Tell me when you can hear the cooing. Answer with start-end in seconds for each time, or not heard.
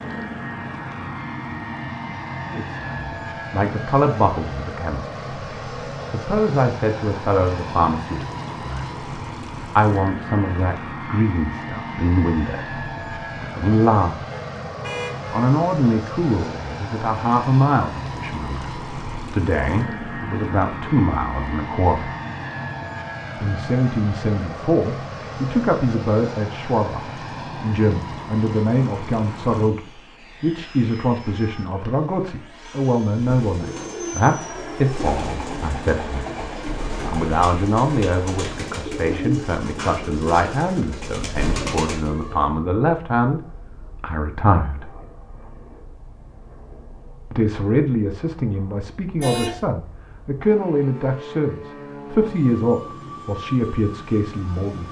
33.1-42.6.